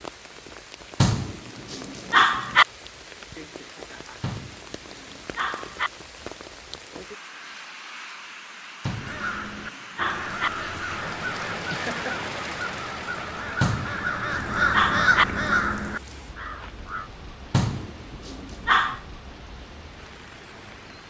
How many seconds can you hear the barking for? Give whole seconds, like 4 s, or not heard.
8 s.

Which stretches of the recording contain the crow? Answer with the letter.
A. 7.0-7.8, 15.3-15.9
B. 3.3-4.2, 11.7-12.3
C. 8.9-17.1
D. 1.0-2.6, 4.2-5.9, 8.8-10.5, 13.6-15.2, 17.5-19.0
C.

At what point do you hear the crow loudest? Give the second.
15 s.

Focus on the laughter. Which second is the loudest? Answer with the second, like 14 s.
12 s.